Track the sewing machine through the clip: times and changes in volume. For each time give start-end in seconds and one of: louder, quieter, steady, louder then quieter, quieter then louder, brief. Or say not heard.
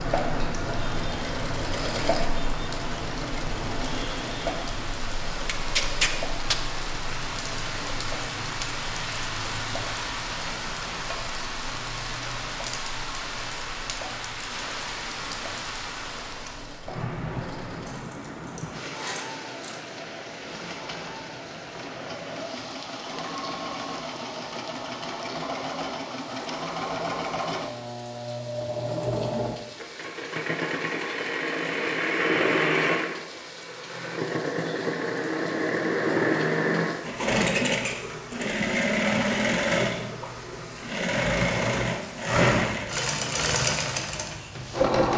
0.0-45.1 quieter then louder.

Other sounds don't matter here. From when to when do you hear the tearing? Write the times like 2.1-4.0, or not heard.
5.5-6.5.